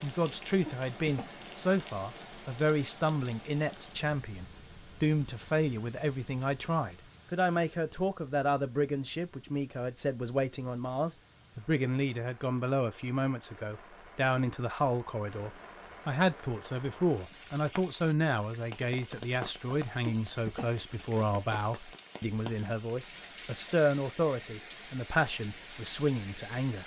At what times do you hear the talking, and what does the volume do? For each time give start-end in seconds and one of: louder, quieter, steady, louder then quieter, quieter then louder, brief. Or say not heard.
0.0-26.8 steady.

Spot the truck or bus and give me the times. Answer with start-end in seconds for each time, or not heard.
not heard.